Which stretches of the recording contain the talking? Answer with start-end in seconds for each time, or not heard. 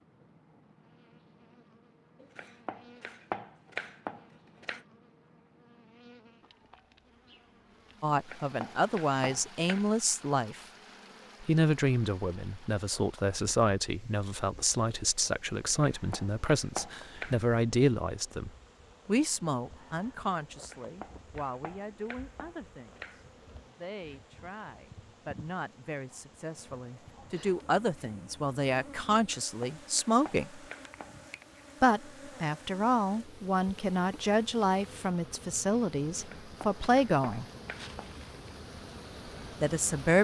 8.0-10.6, 11.4-30.6, 31.8-37.5, 39.6-40.1.